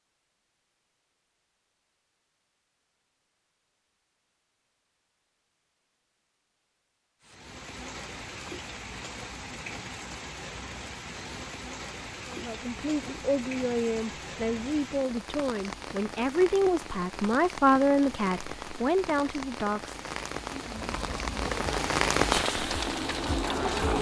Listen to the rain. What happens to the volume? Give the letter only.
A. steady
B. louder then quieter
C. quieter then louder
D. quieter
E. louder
E.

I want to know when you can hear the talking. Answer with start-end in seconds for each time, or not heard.
12.2-20.0.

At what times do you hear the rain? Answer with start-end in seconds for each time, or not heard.
7.2-23.9.